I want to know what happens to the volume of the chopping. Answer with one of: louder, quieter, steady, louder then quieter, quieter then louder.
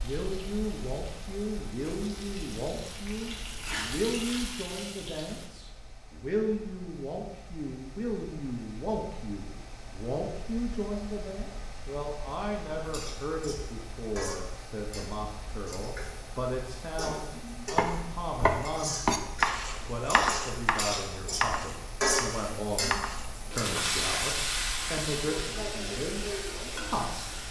quieter.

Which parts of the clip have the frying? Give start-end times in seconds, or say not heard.
0.0-5.5, 12.8-27.4.